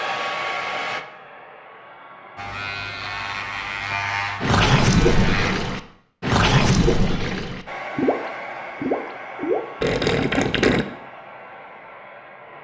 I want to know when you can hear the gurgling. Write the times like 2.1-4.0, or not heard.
4.4-10.8.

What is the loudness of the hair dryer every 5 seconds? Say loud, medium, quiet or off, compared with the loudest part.
loud, loud, medium.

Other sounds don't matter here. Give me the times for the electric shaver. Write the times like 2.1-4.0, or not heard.
2.4-5.8.